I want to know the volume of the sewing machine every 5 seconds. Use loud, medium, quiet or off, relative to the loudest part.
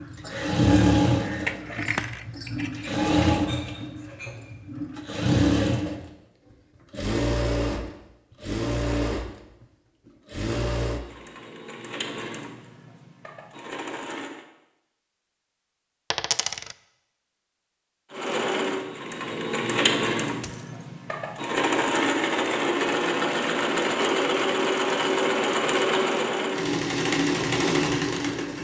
loud, loud, medium, loud, loud, loud.